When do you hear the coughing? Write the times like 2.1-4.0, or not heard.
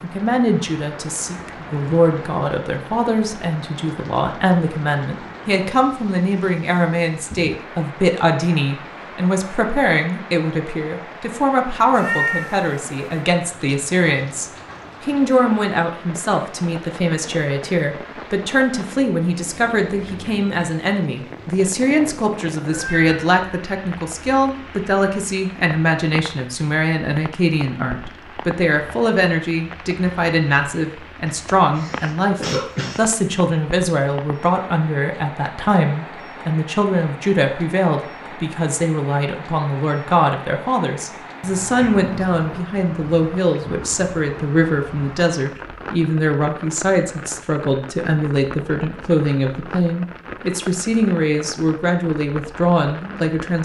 31.2-33.1.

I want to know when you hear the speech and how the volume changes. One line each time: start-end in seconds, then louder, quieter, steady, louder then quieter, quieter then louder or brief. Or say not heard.
0.0-53.5 steady.